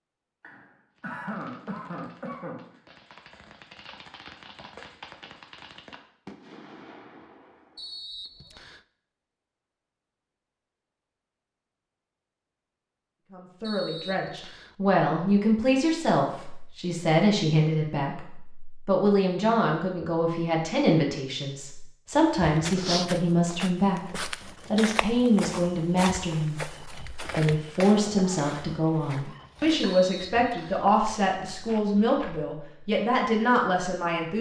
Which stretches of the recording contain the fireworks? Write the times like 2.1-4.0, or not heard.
0.9-8.3.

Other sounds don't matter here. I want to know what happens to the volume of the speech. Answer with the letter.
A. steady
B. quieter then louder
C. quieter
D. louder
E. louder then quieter
A.